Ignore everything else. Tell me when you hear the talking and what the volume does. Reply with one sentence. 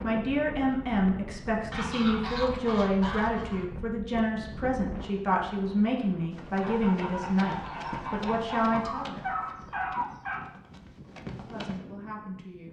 The talking can be heard from 0.0 to 9.3 s, at a steady volume; and briefly from 11.4 to 12.6 s.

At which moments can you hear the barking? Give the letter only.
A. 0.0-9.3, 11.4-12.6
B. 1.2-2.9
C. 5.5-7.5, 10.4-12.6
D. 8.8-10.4
D.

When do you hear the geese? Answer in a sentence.
You can hear the geese from 1.7 to 3.6 s and from 6.6 to 8.8 s.